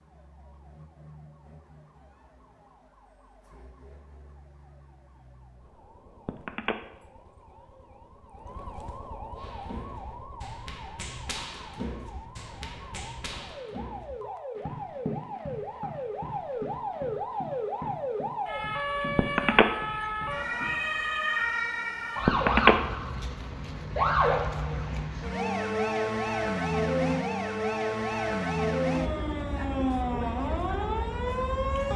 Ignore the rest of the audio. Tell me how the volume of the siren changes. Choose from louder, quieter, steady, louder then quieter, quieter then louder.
louder.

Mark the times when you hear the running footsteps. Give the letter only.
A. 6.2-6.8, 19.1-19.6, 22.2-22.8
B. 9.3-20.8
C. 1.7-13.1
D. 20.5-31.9
B.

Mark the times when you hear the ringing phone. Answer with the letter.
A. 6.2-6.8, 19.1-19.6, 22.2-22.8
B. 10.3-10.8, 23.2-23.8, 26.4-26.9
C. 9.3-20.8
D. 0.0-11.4
A.